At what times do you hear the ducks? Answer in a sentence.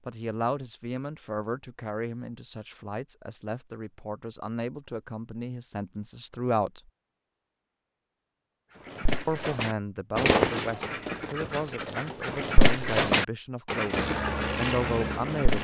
The ducks can be heard from 8.8 to 15.5 s.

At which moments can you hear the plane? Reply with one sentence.
You can hear the plane from 13.9 to 15.5 s.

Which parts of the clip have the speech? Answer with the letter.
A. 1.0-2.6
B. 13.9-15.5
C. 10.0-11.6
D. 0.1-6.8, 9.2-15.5
D.